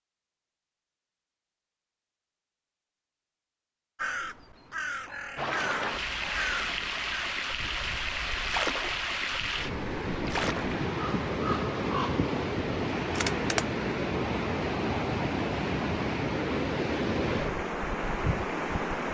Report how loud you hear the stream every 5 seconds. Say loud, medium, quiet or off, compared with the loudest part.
off, loud, loud, loud.